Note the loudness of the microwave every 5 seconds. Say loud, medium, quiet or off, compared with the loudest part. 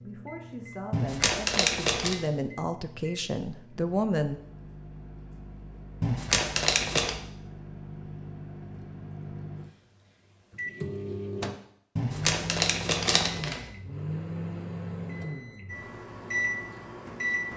quiet, medium, loud, loud.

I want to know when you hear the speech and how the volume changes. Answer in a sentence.
You can hear the speech from 0.0 to 4.4 s, getting louder.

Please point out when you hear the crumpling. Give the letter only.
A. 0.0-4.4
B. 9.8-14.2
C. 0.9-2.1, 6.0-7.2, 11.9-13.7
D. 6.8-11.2
C.